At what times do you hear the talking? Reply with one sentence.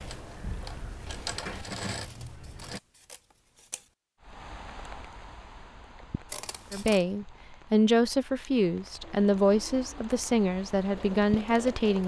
The talking can be heard from 6.7 to 12.0 s.